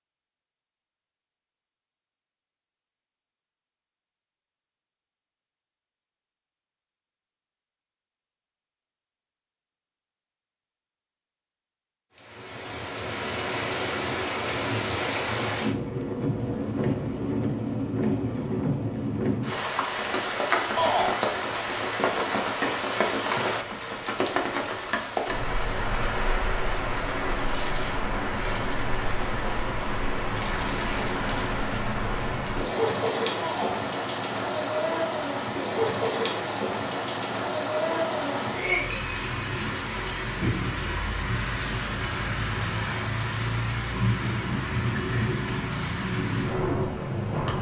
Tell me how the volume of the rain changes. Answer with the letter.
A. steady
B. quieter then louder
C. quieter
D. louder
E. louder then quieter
A.